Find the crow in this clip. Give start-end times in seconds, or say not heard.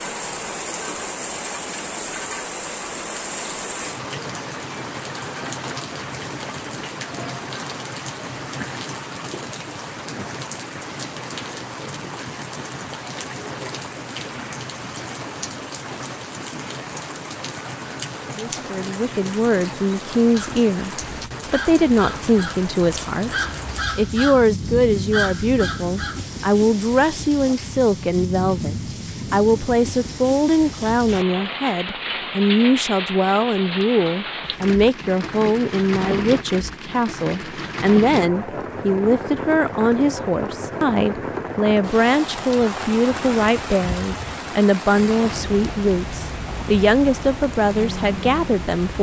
20.3-26.2.